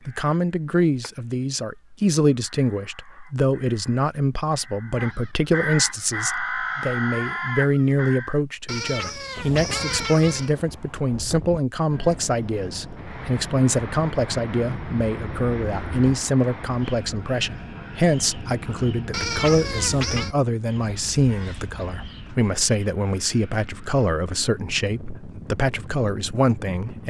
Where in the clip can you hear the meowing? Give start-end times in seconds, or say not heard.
8.7-10.6, 19.1-20.4.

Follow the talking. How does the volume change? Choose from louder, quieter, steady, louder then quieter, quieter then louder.
steady.